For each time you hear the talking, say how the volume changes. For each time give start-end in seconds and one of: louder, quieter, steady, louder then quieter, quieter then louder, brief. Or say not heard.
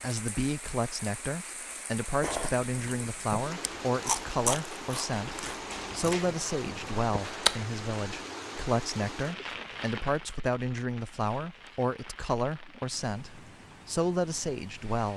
0.0-15.1 steady.